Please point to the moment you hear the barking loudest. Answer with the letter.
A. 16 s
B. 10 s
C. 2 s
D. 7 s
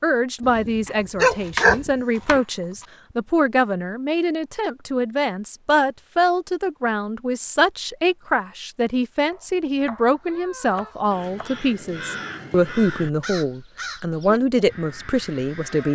C.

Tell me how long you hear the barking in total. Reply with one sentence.
You can hear the barking for 2 seconds altogether.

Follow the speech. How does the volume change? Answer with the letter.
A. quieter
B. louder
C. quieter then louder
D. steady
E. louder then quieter
D.